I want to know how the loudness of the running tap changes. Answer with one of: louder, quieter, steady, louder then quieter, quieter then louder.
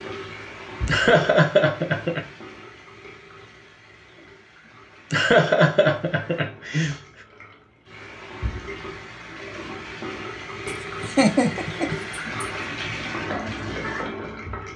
quieter then louder.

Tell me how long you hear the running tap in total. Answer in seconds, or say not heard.
15 s.